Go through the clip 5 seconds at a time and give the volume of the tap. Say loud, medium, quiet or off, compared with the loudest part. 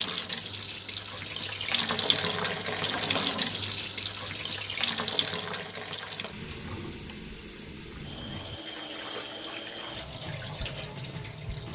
loud, medium, medium.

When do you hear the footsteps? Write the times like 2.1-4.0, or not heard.
not heard.